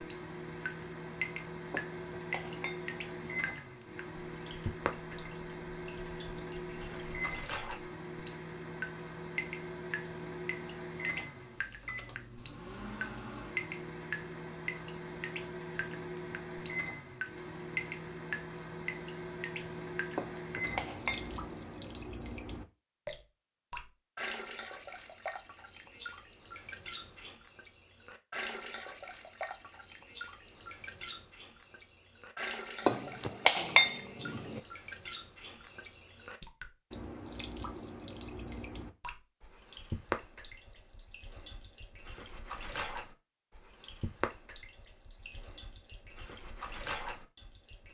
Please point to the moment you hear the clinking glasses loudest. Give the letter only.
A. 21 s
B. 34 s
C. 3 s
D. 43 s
B.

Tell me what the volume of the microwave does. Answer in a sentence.
The loudness of the microwave stays about the same.